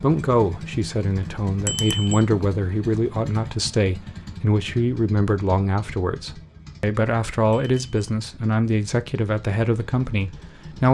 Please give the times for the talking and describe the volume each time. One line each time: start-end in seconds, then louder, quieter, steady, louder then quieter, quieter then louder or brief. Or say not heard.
0.0-10.9 steady.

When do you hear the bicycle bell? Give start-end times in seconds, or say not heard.
1.6-2.2, 7.5-8.0.